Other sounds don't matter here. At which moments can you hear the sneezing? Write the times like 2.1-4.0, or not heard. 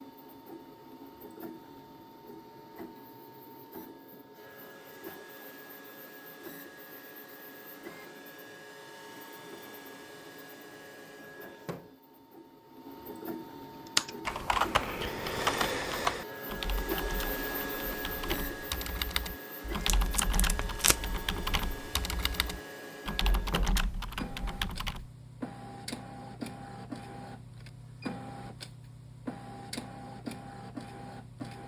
not heard.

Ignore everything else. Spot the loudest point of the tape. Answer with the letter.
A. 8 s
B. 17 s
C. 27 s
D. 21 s
D.